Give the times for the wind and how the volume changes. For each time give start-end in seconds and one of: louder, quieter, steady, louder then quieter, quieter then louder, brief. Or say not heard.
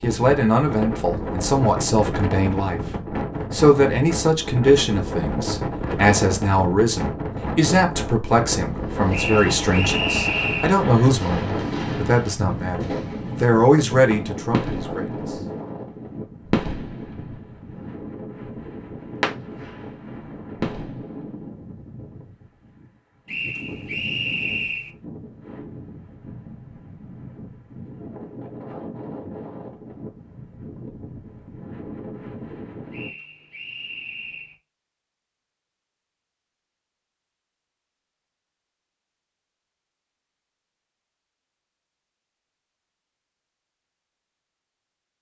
0.0-33.1 quieter.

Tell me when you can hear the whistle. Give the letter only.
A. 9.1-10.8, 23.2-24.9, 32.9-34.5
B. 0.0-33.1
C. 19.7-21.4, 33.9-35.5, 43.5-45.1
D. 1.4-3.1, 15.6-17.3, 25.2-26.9
A.